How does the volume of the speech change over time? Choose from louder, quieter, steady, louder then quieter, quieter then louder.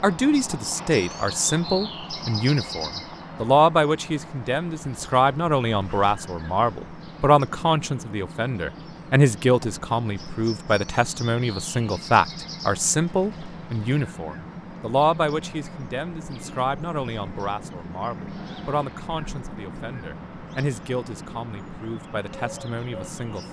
quieter.